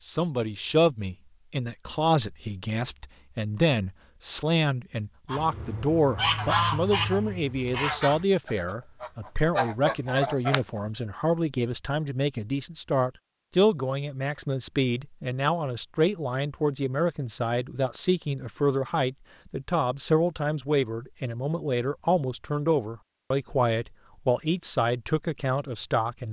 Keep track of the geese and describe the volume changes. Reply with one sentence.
The loudness of the geese goes down, then up.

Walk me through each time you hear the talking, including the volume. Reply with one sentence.
You can hear the talking from 0.0 to 26.2 s, at a steady volume.